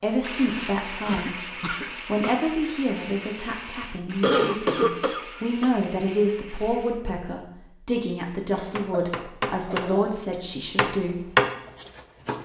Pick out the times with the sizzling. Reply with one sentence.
The sizzling can't be heard in this clip.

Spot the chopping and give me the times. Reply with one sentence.
You can hear the chopping from 8.8 to 12.3 s.